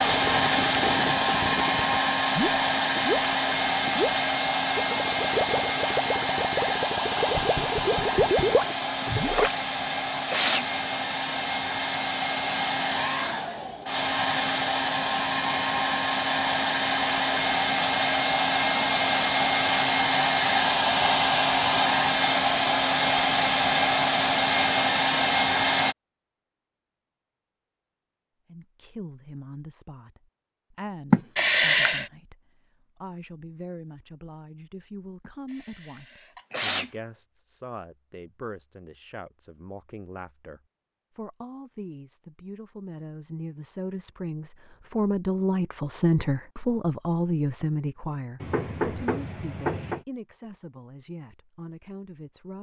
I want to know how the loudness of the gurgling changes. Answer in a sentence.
The volume of the gurgling goes up.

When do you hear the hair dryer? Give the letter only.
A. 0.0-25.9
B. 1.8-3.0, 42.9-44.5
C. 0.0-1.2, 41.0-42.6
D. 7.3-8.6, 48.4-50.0
A.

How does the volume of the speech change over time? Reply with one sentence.
The volume of the speech goes up, then down.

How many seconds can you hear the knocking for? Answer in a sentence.
You can hear the knocking for 3 seconds altogether.